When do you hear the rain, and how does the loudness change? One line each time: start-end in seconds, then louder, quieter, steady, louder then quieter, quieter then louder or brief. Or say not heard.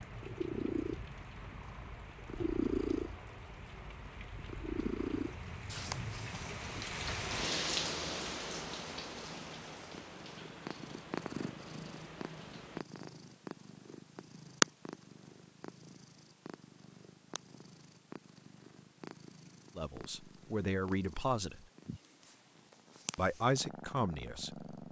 0.0-12.8 louder then quieter.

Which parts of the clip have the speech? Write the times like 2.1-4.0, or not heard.
19.8-21.6, 23.1-24.6.